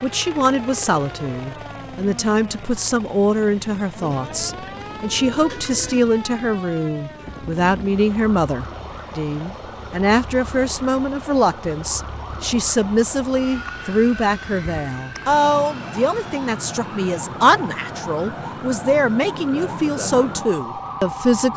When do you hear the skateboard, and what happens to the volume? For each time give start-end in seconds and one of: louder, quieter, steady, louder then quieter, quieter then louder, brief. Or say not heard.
not heard.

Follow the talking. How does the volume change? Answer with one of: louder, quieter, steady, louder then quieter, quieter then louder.
steady.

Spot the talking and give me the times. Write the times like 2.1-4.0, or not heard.
0.0-21.5.